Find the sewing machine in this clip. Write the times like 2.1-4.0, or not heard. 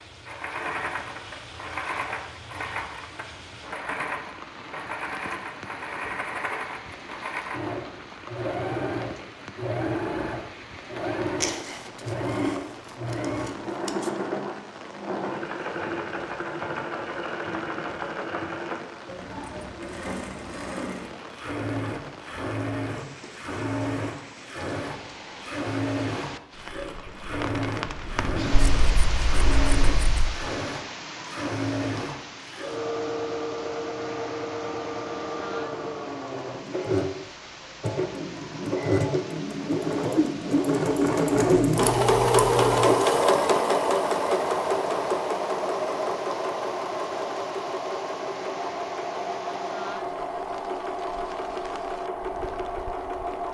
0.2-53.4.